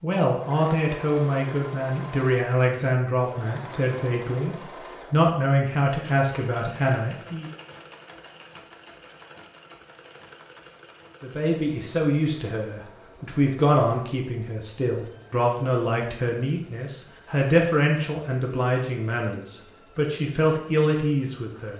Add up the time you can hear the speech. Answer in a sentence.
You can hear the speech for 18 seconds altogether.